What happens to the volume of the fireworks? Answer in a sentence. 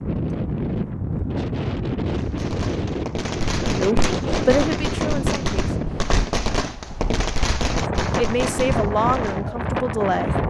The loudness of the fireworks stays about the same.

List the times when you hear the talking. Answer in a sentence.
You can hear the talking from 3.8 to 5.5 s and from 8.2 to 10.3 s.